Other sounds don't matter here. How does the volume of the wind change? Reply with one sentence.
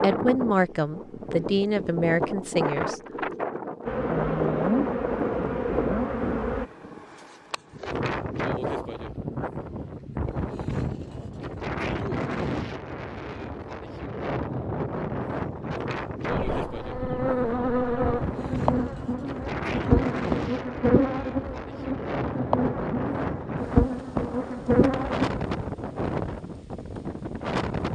The volume of the wind stays about the same.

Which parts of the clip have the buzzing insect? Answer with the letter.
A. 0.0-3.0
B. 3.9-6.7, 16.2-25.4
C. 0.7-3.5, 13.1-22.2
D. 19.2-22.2
B.